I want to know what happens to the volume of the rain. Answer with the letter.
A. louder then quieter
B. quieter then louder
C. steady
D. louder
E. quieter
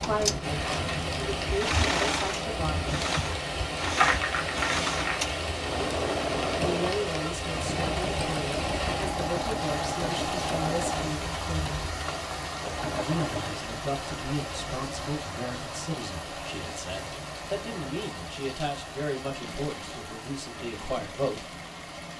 E.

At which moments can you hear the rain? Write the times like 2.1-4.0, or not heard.
0.0-22.1.